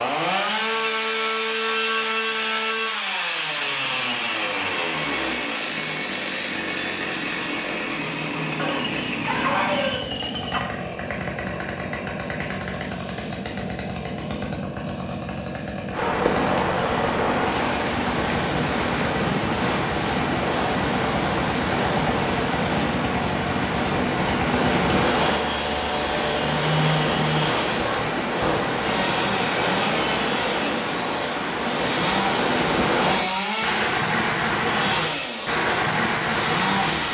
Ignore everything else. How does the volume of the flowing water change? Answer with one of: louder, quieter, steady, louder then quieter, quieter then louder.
steady.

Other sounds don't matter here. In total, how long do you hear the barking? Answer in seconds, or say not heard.
2 s.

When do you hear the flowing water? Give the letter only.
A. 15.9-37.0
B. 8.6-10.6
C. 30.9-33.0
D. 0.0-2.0
A.